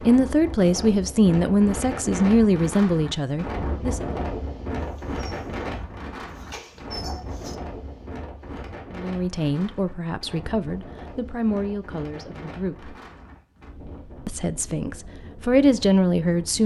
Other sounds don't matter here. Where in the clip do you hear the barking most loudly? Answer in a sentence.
The volume of the barking peaks at 7 seconds.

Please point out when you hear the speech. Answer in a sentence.
The speech can be heard from 0.0 to 4.0 s, from 8.9 to 12.9 s and from 14.2 to 16.6 s.